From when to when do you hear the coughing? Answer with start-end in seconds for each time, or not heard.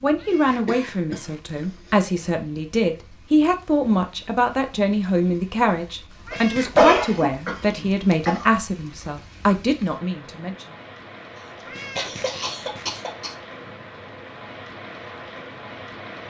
0.7-2.0, 6.3-8.4, 11.3-13.3.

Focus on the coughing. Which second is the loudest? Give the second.
7 s.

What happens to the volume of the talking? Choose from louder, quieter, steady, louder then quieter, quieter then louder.
steady.